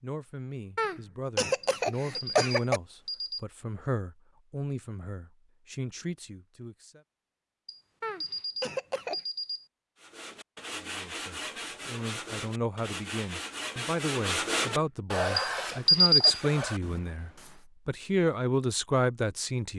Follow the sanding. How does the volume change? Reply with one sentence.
The volume of the sanding goes up, then down.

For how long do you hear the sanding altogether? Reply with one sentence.
The sanding can be heard for 8 seconds in total.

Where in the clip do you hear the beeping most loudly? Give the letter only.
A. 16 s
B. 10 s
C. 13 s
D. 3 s
A.